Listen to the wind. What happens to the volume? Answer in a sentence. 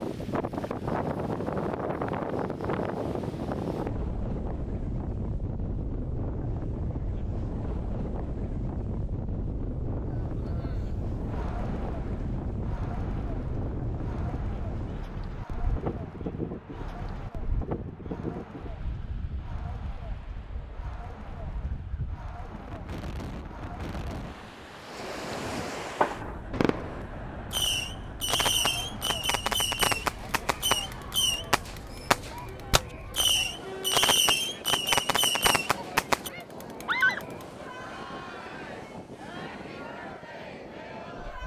The loudness of the wind goes down.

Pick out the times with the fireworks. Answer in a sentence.
The fireworks can be heard from 25.3 to 36.3 s.